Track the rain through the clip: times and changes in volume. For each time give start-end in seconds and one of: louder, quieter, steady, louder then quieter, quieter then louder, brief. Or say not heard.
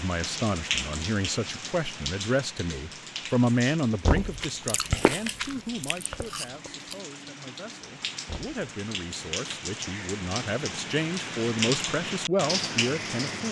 0.0-13.4 quieter then louder.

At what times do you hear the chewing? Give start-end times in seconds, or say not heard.
4.0-7.0.